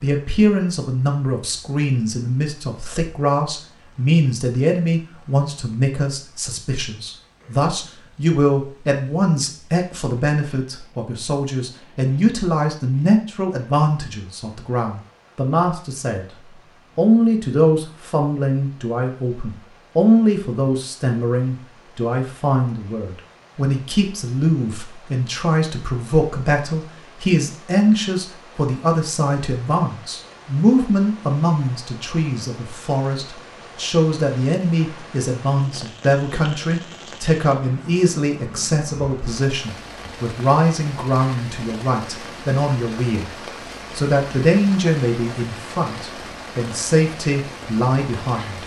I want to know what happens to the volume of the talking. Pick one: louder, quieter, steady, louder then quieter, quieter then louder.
steady.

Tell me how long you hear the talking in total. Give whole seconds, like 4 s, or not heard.
47 s.